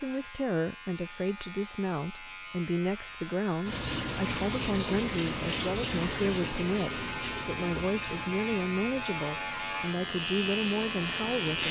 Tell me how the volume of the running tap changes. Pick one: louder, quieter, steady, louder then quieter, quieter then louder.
quieter.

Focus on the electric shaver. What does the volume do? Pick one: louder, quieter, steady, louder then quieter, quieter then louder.
louder.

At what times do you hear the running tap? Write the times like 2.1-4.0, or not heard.
3.6-11.6.